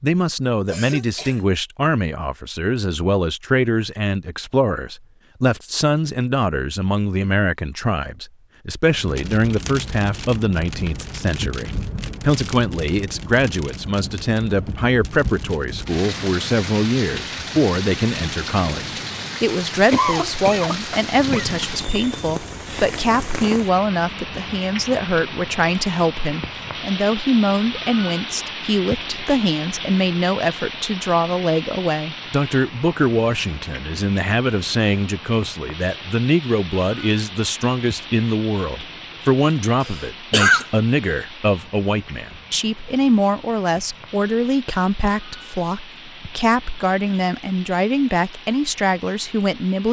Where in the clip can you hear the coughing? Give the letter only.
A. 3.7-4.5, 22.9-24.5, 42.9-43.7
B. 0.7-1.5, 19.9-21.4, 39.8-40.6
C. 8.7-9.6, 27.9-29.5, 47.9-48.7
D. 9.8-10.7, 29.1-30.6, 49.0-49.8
B.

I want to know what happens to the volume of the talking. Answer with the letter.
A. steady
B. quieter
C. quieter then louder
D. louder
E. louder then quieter
A.